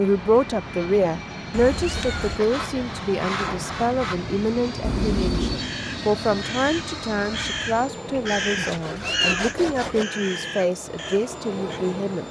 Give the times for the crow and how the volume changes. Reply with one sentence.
You can hear the crow from 5.5 to 11.8 s, getting louder then quieter.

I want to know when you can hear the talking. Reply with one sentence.
The talking can be heard from 0.0 to 12.2 s.